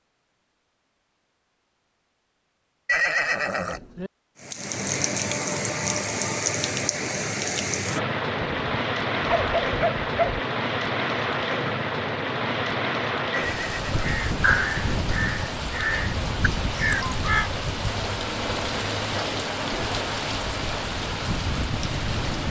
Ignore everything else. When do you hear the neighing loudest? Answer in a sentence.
The volume of the neighing peaks at 3 seconds.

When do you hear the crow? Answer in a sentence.
You can hear the crow from 14.0 to 17.5 s.